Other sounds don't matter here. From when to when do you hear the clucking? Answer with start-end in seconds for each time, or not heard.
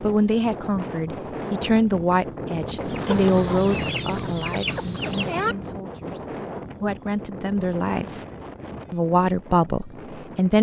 2.8-5.5.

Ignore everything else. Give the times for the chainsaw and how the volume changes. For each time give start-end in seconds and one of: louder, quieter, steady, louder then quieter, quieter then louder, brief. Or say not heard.
not heard.